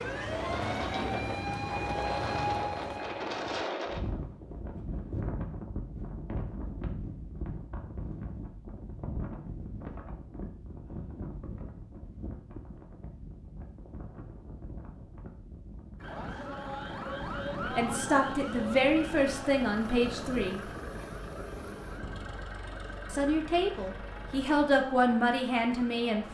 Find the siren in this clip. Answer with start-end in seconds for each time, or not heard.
0.0-3.6, 16.0-26.2.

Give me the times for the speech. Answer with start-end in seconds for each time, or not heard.
17.7-20.6, 23.1-26.2.